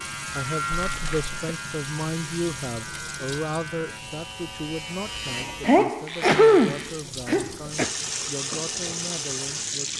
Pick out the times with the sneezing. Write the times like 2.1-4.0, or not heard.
0.8-1.3, 5.7-7.9.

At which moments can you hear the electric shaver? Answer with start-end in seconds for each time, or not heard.
0.0-7.0.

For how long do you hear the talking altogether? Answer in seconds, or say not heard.
10 s.